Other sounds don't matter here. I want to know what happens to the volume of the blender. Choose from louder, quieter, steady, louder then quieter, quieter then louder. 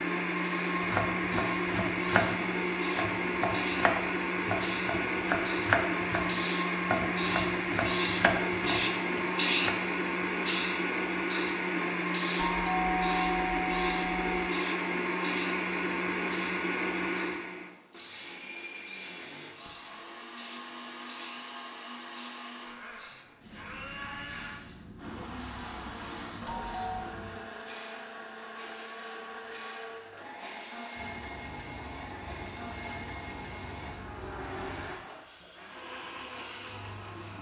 quieter.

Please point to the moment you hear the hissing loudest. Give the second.
9 s.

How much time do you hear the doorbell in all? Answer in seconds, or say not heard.
3 s.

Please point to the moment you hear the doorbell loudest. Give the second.
13 s.